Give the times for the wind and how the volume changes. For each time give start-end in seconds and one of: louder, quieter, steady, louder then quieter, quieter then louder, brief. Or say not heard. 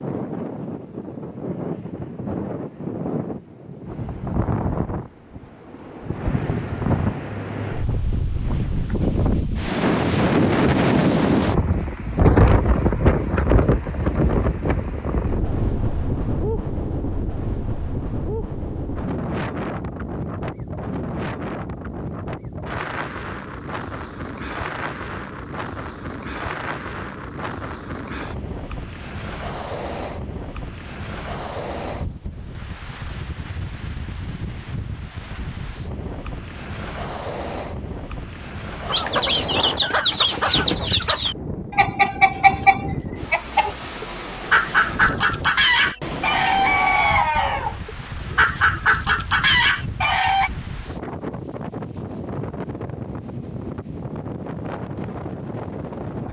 0.0-56.2 quieter.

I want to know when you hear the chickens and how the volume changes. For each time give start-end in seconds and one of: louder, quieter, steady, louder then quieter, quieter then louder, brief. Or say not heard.
38.9-50.5 steady.